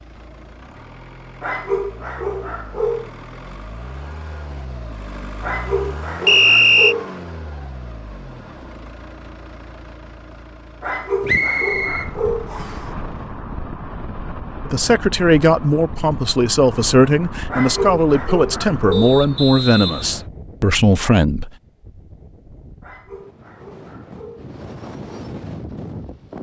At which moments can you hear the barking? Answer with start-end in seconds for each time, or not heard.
1.4-3.1, 5.4-7.1, 10.8-12.5, 17.5-19.2, 22.8-24.5.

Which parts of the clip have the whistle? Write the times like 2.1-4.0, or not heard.
6.2-7.0, 11.2-12.8, 18.9-20.2.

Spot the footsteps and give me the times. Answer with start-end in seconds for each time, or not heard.
not heard.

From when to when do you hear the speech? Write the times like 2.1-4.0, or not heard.
14.7-21.5.